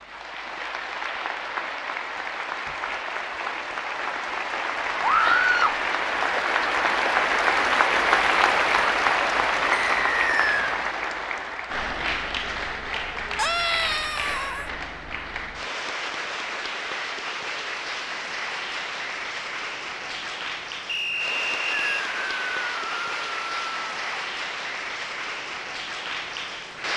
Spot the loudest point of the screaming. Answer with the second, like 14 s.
5 s.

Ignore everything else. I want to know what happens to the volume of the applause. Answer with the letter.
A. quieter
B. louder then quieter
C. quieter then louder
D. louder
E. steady
B.